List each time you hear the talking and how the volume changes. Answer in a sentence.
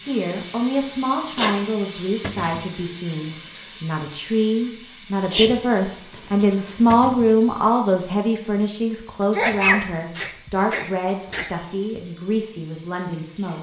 You can hear the talking from 0.0 to 13.5 s, getting louder then quieter.